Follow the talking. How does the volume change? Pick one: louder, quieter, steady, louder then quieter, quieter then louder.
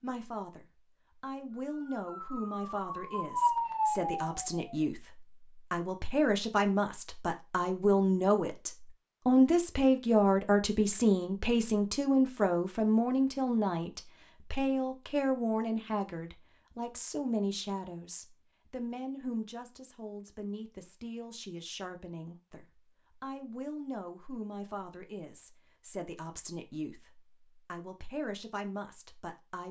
louder then quieter.